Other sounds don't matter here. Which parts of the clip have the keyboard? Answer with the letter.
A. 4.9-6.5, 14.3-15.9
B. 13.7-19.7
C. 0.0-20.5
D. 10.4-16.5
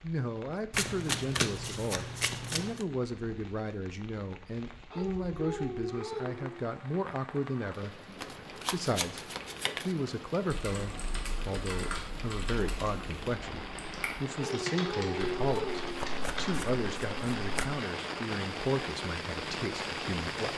D.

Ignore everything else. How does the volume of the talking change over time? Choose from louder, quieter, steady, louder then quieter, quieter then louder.
steady.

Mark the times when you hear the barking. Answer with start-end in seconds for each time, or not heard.
4.9-6.5, 14.3-15.9.